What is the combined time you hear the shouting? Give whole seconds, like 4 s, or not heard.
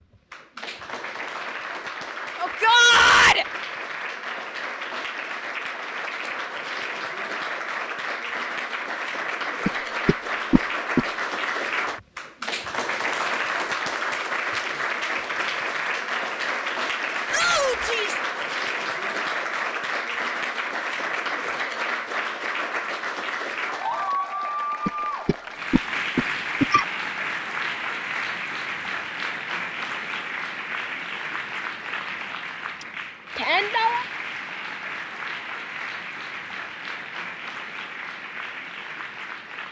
3 s.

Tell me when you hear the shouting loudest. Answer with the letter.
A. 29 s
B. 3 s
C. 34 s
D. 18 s
B.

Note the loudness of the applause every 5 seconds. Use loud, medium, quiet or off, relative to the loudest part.
medium, loud, loud, loud, loud, loud, medium, medium.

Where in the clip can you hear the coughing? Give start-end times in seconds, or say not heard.
9.7-11.1, 24.9-26.9.